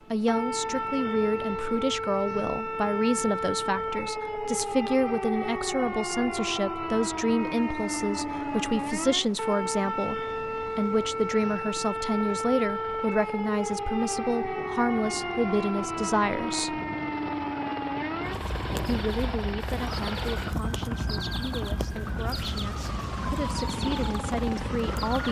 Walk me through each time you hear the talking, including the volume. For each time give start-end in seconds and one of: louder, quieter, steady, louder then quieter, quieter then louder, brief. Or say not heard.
0.1-16.8 steady
18.9-25.2 quieter then louder.